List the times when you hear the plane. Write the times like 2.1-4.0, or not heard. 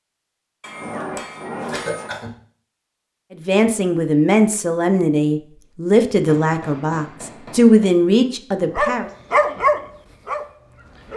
not heard.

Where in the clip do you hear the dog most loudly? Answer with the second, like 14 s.
10 s.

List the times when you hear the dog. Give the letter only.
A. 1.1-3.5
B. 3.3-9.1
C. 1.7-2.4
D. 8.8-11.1
D.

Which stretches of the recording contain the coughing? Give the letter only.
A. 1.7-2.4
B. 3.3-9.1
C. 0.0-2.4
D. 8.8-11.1
A.